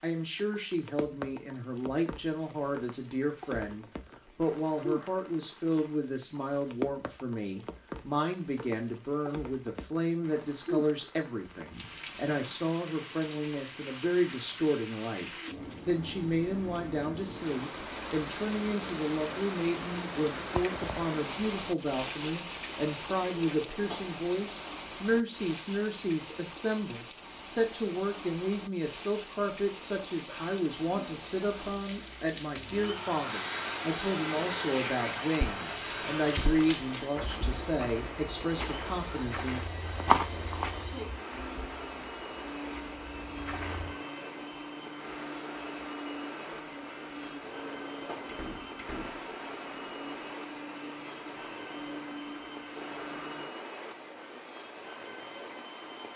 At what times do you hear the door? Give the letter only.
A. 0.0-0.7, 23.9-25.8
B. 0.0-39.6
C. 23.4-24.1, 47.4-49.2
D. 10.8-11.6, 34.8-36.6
C.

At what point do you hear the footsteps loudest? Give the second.
40 s.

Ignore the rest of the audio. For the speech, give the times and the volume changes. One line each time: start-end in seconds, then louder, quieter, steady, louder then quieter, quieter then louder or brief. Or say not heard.
0.0-39.6 steady.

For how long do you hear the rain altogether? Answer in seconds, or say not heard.
56 s.